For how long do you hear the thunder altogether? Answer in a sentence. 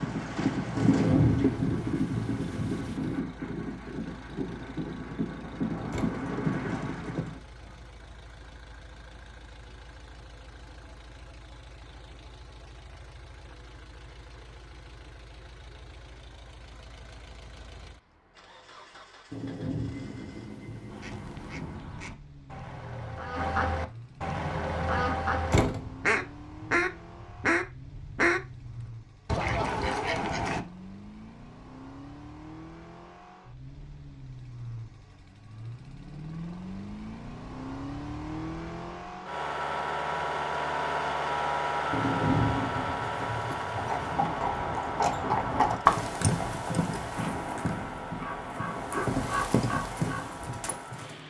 The thunder can be heard for 7 seconds in total.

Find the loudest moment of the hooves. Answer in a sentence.
The volume of the hooves peaks at 46 seconds.